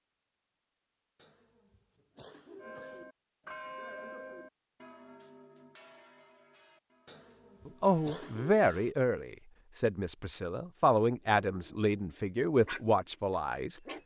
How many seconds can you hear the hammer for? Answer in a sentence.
You can't hear the hammer here.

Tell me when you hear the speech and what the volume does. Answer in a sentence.
The speech can be heard from 7.7 to 13.8 s, getting quieter then louder.